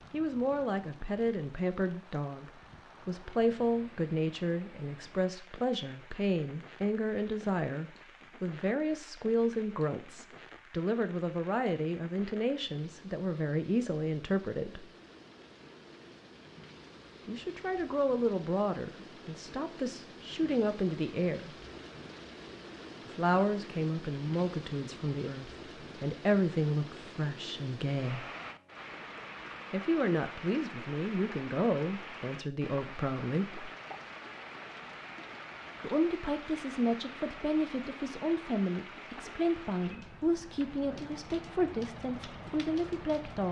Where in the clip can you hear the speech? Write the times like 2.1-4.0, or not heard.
0.1-14.8, 17.2-21.5, 23.1-28.2, 29.7-33.7, 35.8-43.4.